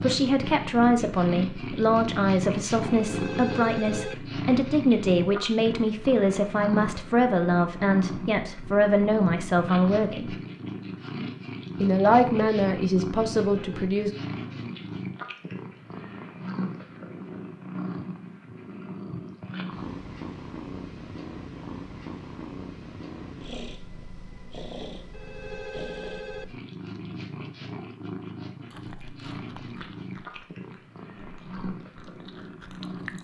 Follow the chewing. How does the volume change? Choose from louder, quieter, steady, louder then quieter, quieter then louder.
quieter then louder.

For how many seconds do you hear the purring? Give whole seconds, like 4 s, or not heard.
33 s.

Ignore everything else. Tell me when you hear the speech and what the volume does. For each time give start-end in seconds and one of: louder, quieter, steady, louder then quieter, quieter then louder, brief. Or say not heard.
0.0-10.3 steady
11.8-14.1 brief.